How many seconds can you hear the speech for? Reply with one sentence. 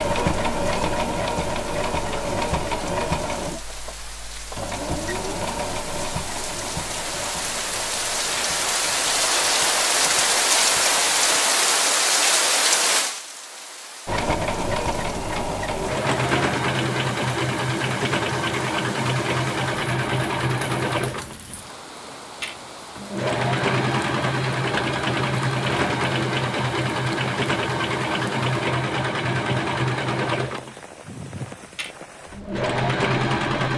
You can't hear the speech here.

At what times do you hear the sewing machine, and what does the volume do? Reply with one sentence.
The sewing machine can be heard from 0.0 to 11.4 s, getting quieter; and from 14.1 to 33.7 s, at a steady volume.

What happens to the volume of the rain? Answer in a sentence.
The loudness of the rain goes up, then down.